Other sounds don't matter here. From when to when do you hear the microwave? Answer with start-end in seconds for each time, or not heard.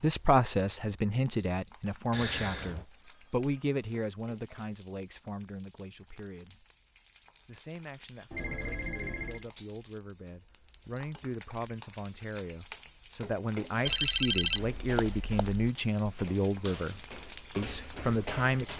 not heard.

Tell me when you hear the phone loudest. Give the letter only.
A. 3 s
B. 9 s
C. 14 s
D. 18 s
C.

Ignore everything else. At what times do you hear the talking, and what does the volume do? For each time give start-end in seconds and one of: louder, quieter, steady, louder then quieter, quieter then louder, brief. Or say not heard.
0.0-6.7 quieter
7.5-18.7 louder.